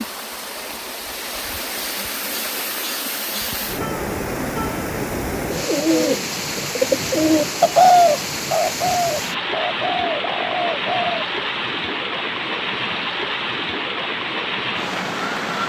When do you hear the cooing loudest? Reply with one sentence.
The loudest moment of the cooing is at 8 seconds.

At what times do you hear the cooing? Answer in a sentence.
The cooing can be heard from 5.5 to 11.2 s.